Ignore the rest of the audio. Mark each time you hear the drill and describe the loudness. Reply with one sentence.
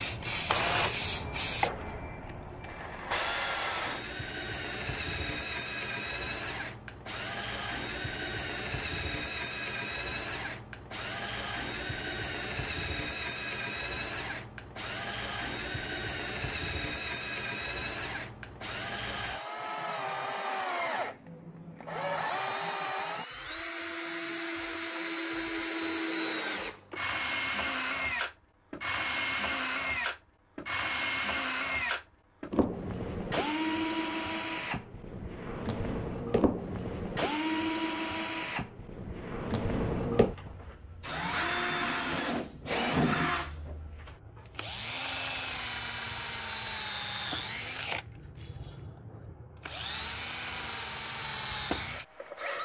The drill can be heard from 0.0 to 52.6 s, at a steady volume.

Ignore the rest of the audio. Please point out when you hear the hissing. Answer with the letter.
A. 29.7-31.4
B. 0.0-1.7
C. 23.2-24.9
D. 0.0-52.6
B.